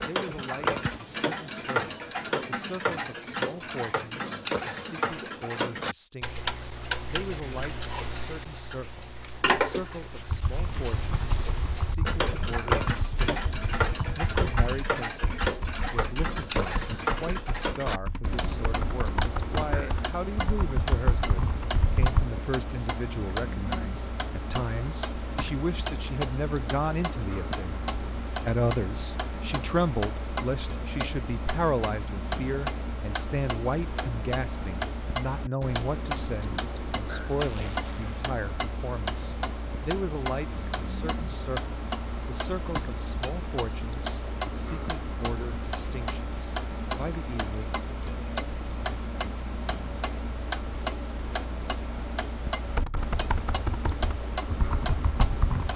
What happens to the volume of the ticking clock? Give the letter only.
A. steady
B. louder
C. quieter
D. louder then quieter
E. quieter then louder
A.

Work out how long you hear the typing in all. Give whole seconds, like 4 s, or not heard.
15 s.